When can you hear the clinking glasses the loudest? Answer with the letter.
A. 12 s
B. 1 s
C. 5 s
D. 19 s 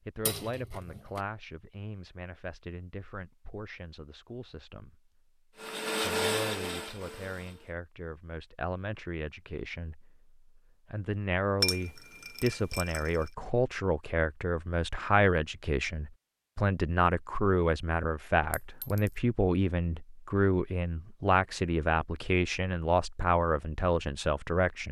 A.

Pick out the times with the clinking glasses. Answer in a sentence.
You can hear the clinking glasses from 0.2 to 1.2 s, from 11.6 to 13.3 s and from 18.5 to 19.1 s.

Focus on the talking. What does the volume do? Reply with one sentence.
The loudness of the talking goes up.